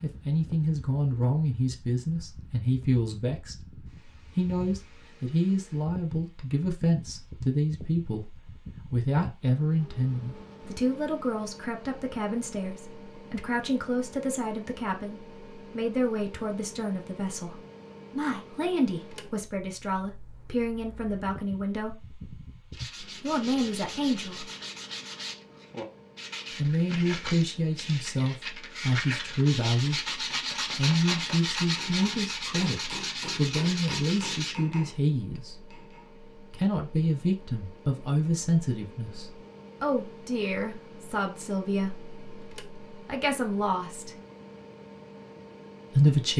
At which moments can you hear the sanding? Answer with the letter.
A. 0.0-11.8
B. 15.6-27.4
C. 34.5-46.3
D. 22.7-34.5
D.